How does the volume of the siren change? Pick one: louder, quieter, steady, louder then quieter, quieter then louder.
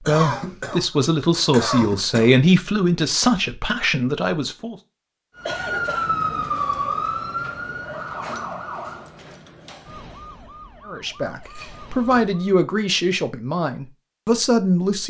quieter.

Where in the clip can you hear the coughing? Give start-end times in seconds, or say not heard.
0.1-2.4, 5.5-6.1, 11.4-12.2.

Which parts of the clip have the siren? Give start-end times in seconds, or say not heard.
5.3-12.6.